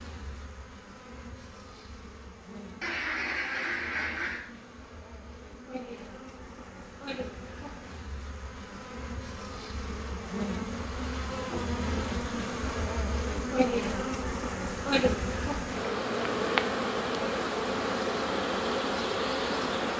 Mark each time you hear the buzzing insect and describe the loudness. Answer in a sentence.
The buzzing insect can be heard from 0.0 to 19.9 s, getting louder.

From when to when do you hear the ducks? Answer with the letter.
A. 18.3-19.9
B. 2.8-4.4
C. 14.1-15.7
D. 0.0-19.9
B.